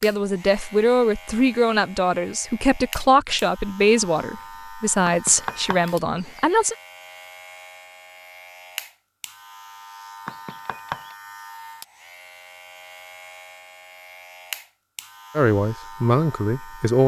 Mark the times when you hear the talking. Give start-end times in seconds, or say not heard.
0.0-6.8, 15.3-17.0.